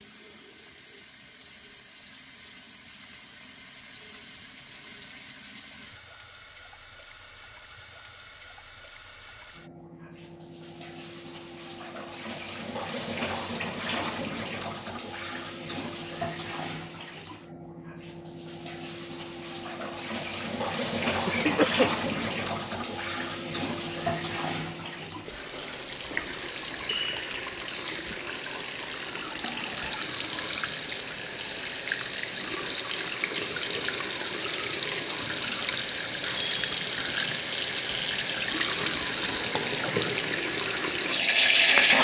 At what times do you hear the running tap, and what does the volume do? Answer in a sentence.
You can hear the running tap from 0.0 to 41.9 s, getting louder.